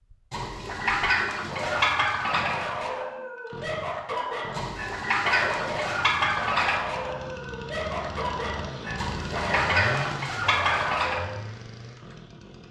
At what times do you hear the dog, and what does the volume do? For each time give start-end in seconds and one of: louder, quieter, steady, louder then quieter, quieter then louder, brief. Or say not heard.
1.4-11.4 steady.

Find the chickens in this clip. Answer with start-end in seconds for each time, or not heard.
0.3-2.5, 4.5-6.8, 8.9-11.2.